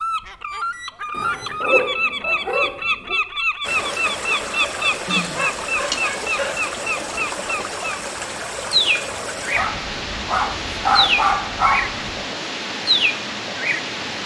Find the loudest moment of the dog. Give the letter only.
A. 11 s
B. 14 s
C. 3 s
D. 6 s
A.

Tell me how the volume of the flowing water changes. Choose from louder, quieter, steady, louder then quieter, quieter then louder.
steady.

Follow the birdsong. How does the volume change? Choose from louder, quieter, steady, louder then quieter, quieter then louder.
steady.